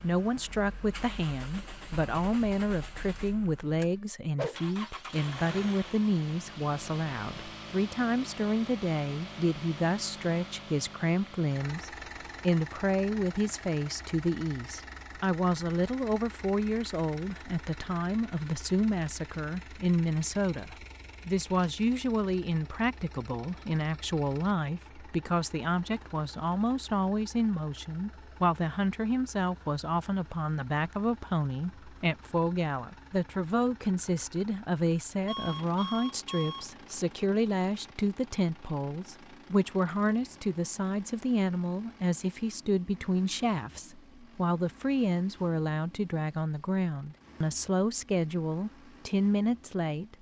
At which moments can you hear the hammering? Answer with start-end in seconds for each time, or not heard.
not heard.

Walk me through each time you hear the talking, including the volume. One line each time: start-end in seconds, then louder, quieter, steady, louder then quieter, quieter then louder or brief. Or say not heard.
0.0-50.1 steady.